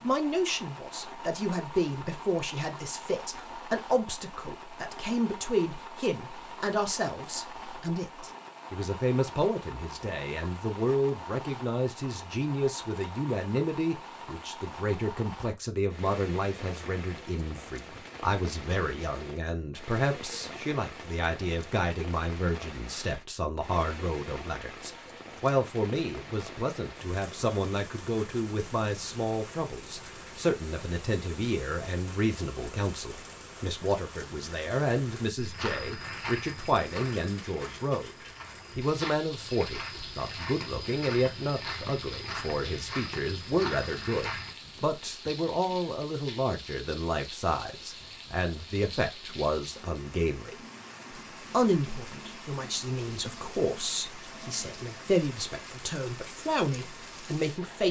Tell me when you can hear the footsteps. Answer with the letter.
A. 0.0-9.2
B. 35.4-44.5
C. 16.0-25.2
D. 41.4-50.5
B.